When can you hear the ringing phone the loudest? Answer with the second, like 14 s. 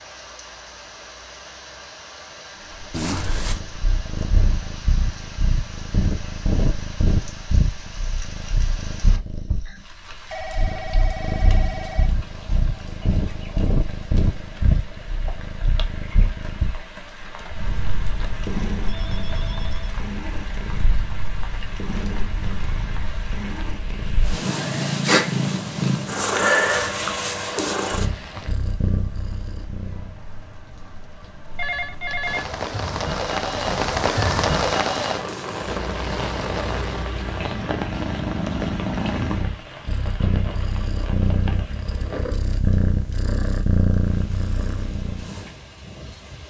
32 s.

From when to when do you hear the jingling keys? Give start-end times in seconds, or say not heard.
2.9-3.6.